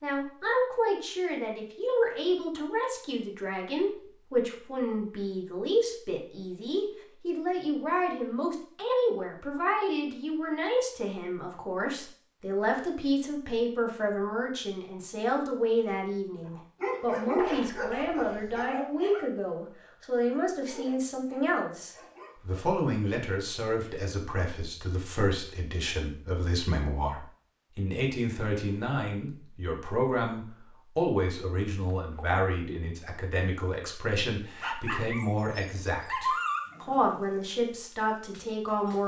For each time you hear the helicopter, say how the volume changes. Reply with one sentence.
You can't hear the helicopter here.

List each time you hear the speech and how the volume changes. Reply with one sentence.
You can hear the speech from 0.0 to 39.0 s, at a steady volume.